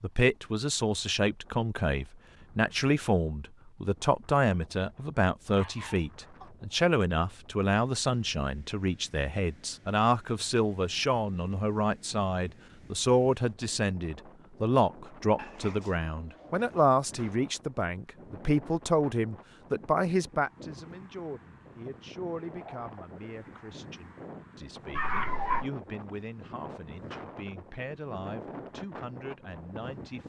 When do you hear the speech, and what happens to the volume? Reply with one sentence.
The speech can be heard from 0.0 to 30.2 s, getting quieter.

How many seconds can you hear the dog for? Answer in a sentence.
You can hear the dog for 4 seconds altogether.